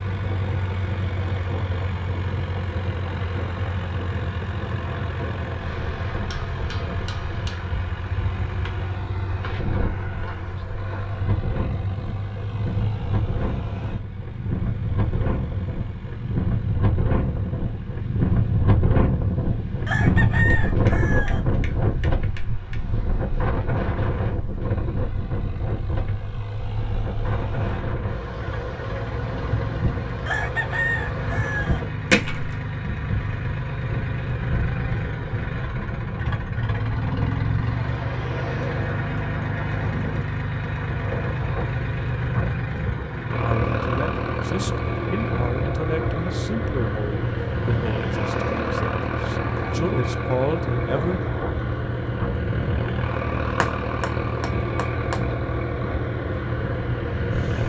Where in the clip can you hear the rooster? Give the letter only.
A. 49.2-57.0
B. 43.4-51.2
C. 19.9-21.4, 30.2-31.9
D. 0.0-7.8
C.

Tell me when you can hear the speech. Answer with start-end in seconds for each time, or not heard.
43.4-51.2.